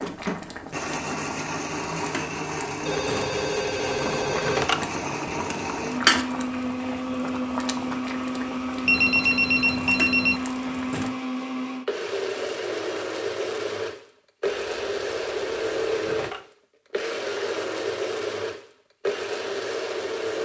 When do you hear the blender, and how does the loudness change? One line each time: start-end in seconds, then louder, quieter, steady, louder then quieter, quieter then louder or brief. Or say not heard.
0.0-20.4 steady.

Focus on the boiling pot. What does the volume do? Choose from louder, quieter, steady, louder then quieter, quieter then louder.
louder then quieter.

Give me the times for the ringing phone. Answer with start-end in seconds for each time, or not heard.
2.9-4.8, 8.8-10.4, 14.6-16.4.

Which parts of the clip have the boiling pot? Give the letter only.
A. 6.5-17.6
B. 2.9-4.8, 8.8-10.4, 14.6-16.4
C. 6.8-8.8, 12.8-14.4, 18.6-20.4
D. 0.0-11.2
D.